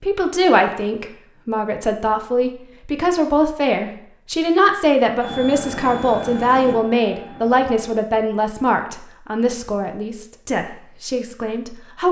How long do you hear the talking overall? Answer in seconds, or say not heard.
12 s.